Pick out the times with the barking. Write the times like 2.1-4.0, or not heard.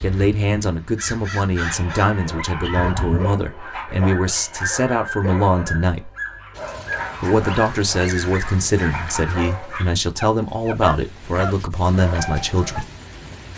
1.6-12.8.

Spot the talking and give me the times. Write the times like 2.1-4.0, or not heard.
0.0-6.1, 7.2-12.8.